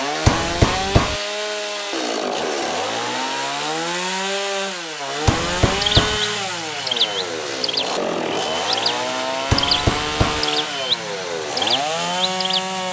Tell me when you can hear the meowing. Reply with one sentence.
You can't hear the meowing here.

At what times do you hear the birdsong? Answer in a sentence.
You can hear the birdsong from 5.7 to 12.8 s.